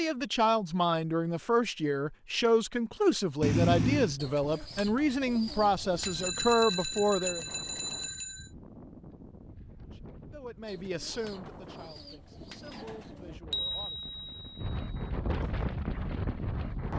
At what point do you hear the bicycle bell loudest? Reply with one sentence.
The loudest moment of the bicycle bell is at 4 seconds.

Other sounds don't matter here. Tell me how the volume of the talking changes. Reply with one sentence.
The loudness of the talking goes down.